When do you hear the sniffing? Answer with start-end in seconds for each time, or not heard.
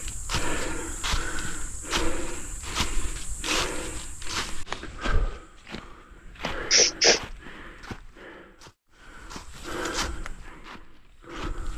6.4-7.2.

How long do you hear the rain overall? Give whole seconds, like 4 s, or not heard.
not heard.